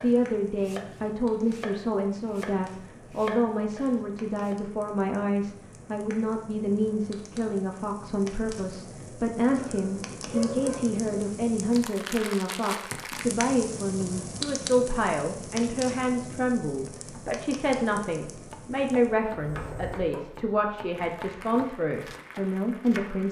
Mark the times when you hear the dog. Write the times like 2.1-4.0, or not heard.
9.6-11.3.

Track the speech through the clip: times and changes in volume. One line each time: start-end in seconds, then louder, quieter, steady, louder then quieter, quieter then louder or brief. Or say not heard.
0.0-23.2 steady.